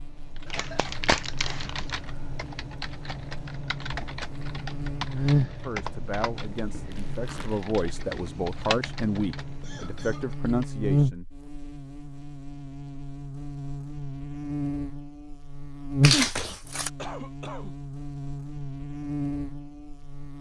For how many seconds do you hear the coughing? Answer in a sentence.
You can hear the coughing for 3 seconds altogether.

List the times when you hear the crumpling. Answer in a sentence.
The crumpling can be heard from 0.5 to 1.9 s, from 6.9 to 7.7 s and from 16.0 to 16.9 s.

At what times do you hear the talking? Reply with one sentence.
You can hear the talking from 5.3 to 11.2 s.